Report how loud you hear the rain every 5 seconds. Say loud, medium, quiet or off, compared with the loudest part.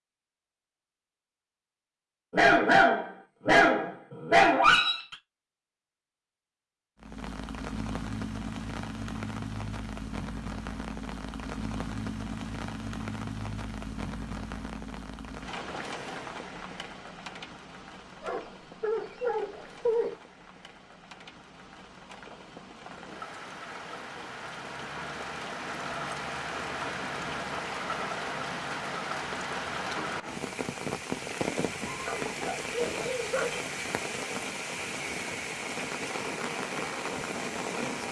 off, loud, loud, medium, medium, loud, loud, loud.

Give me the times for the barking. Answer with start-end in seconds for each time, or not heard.
2.3-5.2, 18.2-20.1, 31.9-33.6.